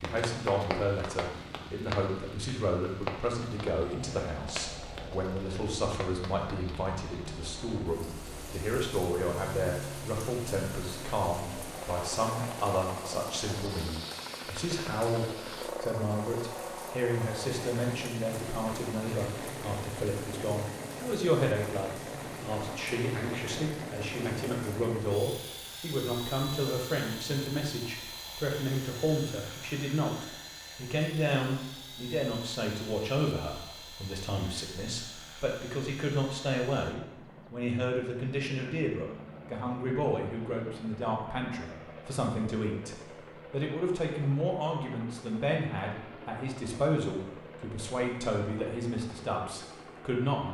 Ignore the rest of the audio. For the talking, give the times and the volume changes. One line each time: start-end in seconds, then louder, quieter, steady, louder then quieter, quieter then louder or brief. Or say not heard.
0.0-50.5 steady.